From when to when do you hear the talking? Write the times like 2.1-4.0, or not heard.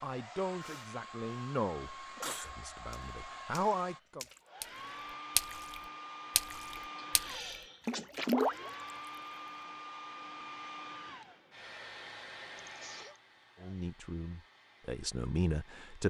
0.0-4.2, 13.6-16.0.